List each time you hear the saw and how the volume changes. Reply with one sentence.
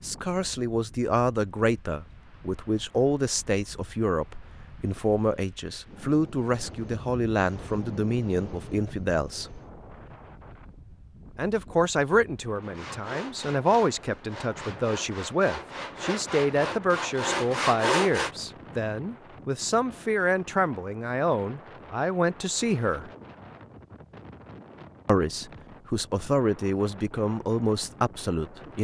The saw can be heard from 12.6 to 18.3 s, getting louder.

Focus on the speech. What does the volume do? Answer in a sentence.
The loudness of the speech stays about the same.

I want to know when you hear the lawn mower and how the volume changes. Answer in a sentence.
The lawn mower can't be heard in this clip.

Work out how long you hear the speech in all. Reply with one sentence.
You can hear the speech for 25 seconds altogether.